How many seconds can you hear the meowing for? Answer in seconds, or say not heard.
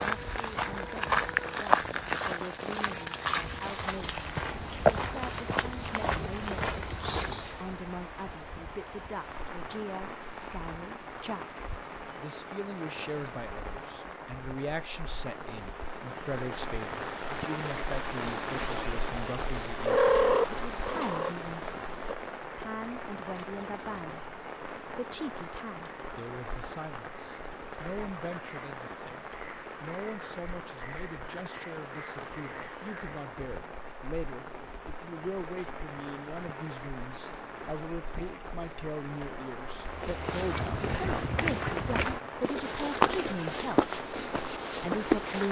2 s.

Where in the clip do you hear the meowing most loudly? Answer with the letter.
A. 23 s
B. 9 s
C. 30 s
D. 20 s
D.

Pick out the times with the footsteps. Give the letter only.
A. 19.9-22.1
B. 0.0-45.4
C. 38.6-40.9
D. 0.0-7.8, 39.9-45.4
D.